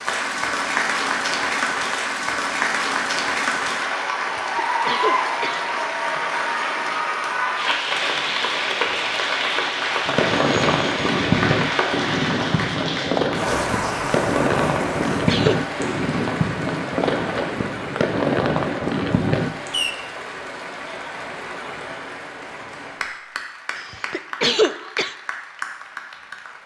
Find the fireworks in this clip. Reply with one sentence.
You can hear the fireworks from 10.1 to 19.9 s.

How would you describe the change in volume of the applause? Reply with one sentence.
The volume of the applause goes down.